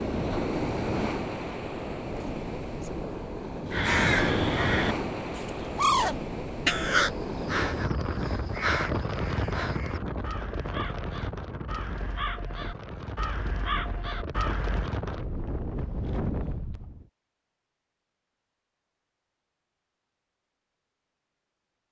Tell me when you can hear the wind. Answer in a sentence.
You can hear the wind from 0.0 to 17.1 s.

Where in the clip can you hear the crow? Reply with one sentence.
You can hear the crow from 3.7 to 14.9 s.